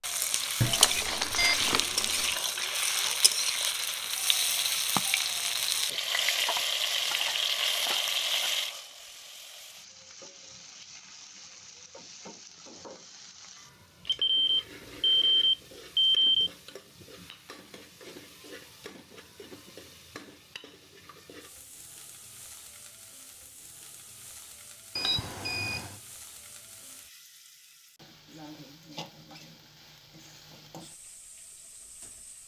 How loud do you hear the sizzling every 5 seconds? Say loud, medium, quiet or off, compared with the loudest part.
loud, loud, quiet, quiet, quiet, quiet, quiet.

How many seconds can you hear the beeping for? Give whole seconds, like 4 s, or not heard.
5 s.